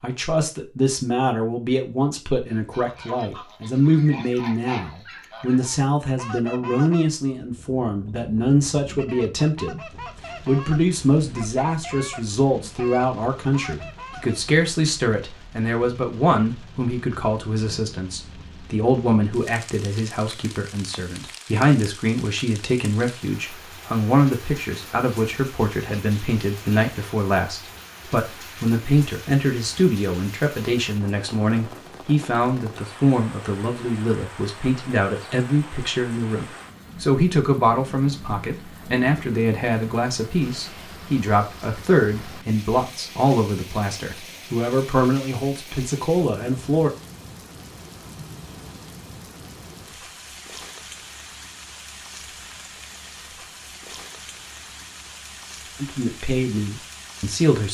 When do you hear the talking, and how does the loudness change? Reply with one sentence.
The talking can be heard from 0.0 to 46.9 s, at a steady volume; and briefly from 55.8 to 57.6 s.